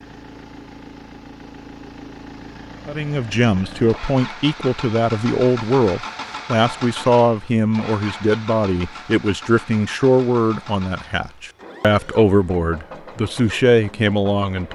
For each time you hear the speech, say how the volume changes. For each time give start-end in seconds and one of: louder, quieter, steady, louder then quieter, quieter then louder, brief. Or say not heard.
2.9-14.6 steady.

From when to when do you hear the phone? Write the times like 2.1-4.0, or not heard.
not heard.